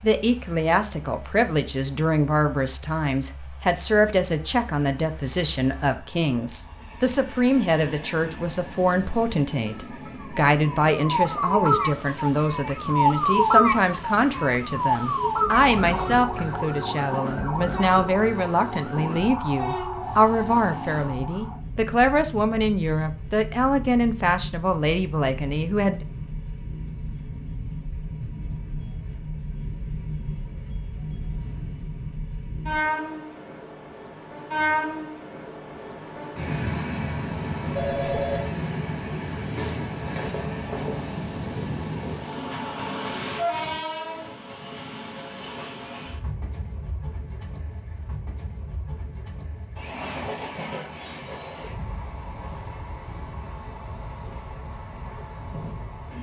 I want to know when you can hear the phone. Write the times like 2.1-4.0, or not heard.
37.8-38.5.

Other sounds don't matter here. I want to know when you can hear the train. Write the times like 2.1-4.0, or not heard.
0.0-56.1.